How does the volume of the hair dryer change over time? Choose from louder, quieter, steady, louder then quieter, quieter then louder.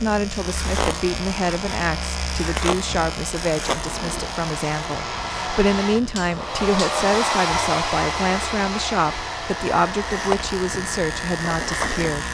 louder then quieter.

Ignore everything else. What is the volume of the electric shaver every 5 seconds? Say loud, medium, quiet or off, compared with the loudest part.
loud, medium, loud.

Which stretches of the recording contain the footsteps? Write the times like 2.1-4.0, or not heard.
not heard.